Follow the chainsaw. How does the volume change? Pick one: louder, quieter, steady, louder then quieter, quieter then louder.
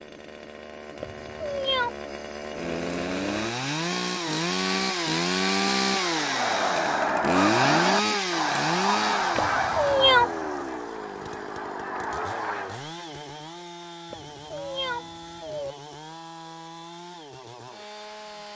louder then quieter.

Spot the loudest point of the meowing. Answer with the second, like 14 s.
10 s.